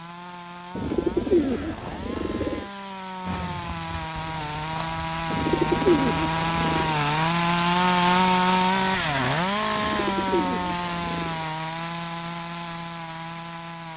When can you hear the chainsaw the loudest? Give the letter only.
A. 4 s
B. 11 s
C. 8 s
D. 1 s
C.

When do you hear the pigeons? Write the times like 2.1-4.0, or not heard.
0.8-2.6, 5.3-7.0, 9.8-11.4.